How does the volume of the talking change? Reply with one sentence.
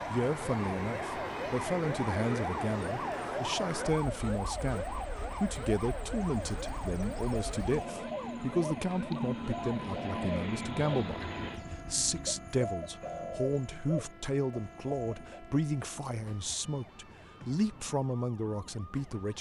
The loudness of the talking stays about the same.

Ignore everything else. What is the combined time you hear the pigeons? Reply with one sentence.
The pigeons can be heard for 9 seconds in total.